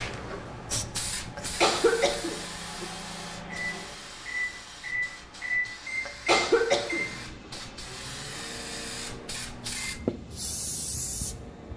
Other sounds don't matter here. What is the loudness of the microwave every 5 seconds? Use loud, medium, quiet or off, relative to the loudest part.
loud, loud, quiet.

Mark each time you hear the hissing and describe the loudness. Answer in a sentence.
You can hear the hissing from 0.0 to 11.7 s, getting quieter then louder.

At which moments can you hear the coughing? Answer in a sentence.
The coughing can be heard from 1.4 to 2.9 s and from 6.0 to 7.0 s.